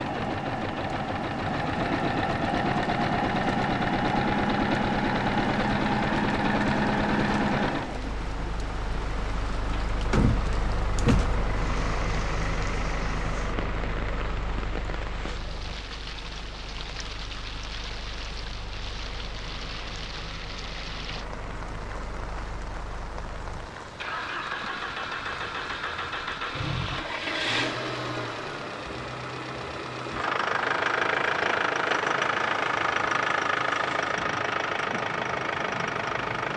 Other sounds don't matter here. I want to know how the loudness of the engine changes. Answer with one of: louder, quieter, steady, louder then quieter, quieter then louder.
quieter then louder.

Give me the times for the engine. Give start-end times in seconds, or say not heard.
0.0-36.5.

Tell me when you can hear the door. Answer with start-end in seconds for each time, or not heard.
10.1-11.4.